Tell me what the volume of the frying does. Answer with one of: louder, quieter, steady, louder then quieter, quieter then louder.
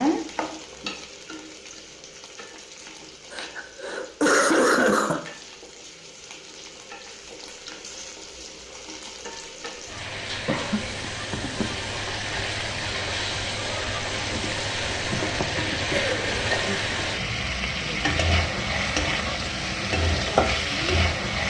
louder.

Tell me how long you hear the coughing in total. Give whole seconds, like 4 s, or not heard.
3 s.